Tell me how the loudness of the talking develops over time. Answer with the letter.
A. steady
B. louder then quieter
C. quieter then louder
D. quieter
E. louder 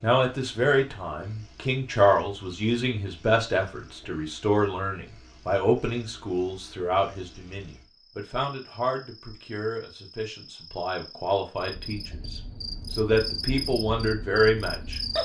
C.